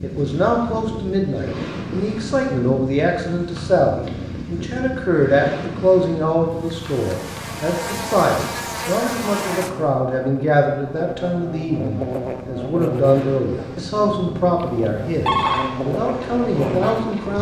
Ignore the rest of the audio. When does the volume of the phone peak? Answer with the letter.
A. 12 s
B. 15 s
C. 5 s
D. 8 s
B.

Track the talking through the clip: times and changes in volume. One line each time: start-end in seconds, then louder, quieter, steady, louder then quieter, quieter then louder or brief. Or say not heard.
0.0-17.3 steady.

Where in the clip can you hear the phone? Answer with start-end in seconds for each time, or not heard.
3.5-4.2, 6.8-7.4, 14.6-15.7.